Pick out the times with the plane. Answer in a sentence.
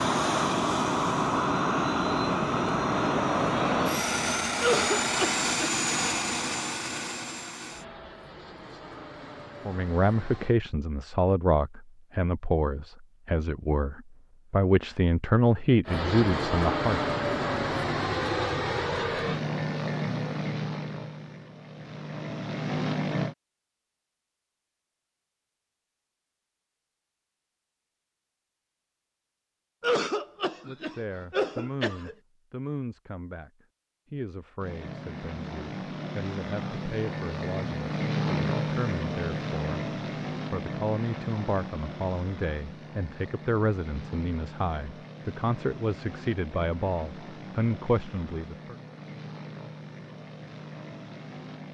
The plane can be heard from 0.0 to 10.6 s, from 15.8 to 23.4 s and from 34.6 to 51.6 s.